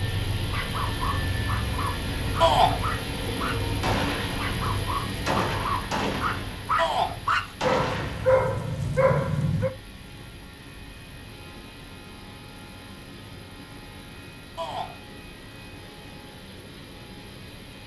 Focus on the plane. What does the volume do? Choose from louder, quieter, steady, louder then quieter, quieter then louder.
quieter.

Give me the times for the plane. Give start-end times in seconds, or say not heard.
0.0-17.8.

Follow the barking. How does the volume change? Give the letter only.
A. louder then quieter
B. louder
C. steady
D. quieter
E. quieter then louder
B.